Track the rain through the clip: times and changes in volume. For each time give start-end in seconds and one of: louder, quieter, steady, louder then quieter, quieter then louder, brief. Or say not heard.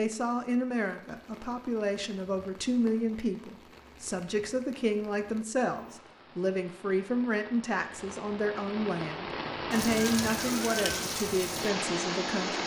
0.0-12.6 louder.